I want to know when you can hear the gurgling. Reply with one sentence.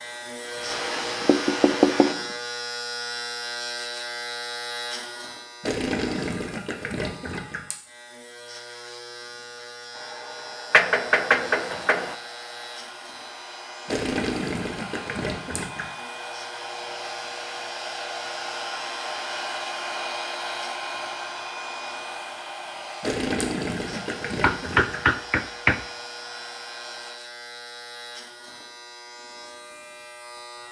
The gurgling can be heard from 5.6 to 7.6 s, from 13.8 to 15.8 s and from 23.0 to 25.0 s.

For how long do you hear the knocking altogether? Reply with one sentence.
You can hear the knocking for 4 seconds altogether.